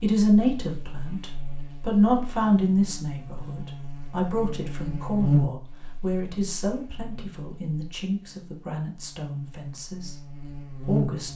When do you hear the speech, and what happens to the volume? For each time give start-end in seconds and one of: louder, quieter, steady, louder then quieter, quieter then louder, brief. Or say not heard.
0.0-10.2 quieter
10.8-11.3 brief.